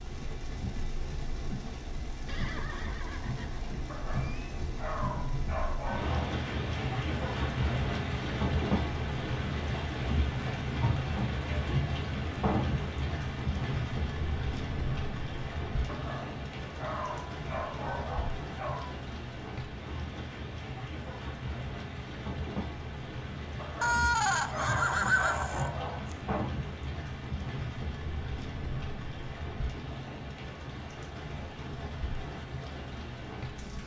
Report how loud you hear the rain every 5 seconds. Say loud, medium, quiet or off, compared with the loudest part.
medium, loud, loud, medium, medium, medium, medium.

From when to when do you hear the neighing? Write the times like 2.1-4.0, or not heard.
2.2-4.4, 23.8-26.1.